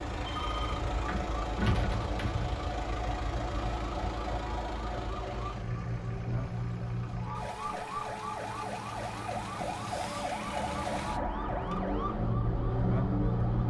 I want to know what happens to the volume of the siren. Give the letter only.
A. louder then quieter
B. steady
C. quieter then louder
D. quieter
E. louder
E.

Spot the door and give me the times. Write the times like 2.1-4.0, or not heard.
1.1-2.5.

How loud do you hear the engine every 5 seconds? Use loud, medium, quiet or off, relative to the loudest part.
loud, medium, loud.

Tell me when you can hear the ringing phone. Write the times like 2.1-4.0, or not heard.
0.2-0.8.